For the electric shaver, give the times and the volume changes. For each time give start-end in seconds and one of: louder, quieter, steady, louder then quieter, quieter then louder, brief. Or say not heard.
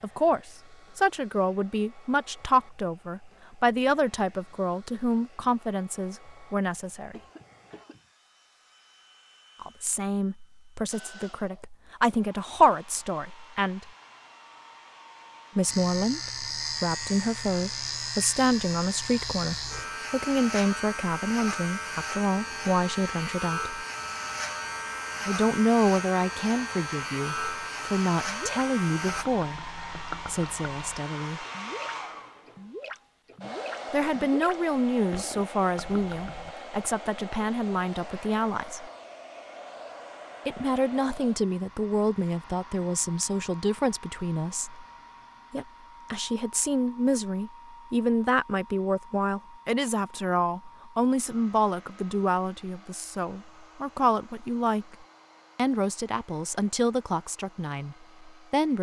15.7-29.2 steady.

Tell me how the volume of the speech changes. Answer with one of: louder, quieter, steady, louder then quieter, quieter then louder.
steady.